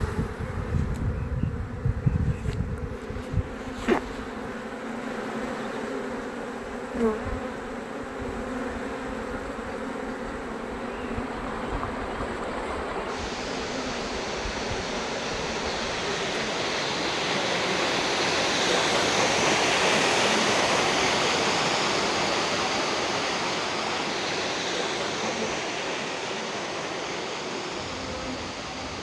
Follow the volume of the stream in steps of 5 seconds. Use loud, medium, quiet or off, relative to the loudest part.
off, off, medium, loud, loud, medium.